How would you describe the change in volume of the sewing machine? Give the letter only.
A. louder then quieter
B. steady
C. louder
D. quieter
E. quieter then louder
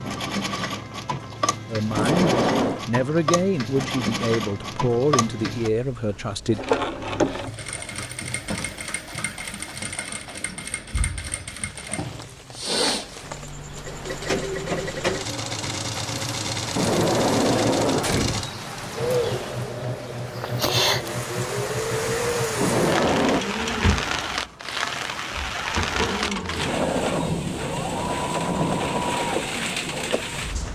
B.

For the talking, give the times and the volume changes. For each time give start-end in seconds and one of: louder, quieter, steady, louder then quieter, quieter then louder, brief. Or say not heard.
1.7-6.6 steady.